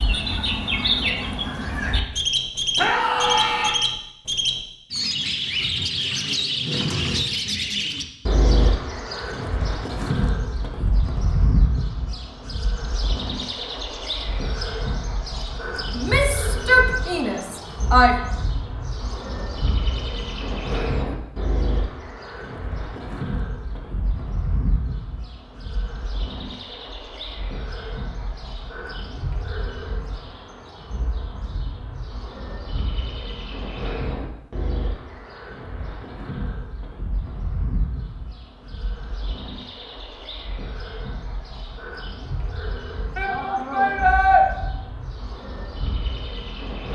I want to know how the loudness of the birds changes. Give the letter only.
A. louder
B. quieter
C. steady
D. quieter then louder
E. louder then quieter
B.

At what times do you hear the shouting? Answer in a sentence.
You can hear the shouting from 2.8 to 3.8 s, from 15.9 to 18.1 s and from 43.1 to 44.5 s.